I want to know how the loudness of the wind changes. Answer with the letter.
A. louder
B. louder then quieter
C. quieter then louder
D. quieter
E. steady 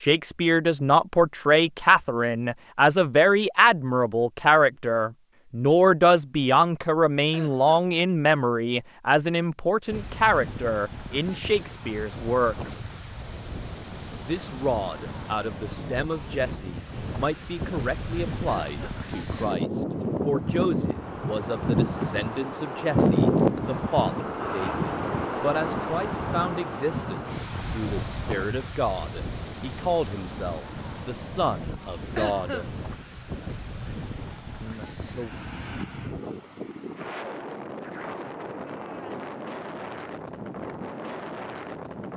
B.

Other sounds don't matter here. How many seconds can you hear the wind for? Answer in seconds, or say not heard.
32 s.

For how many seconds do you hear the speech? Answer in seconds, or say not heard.
32 s.